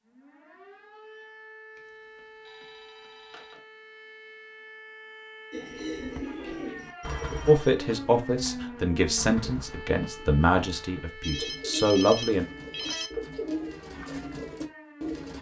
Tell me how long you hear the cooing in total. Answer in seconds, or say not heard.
10 s.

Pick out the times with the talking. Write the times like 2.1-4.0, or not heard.
7.5-12.4.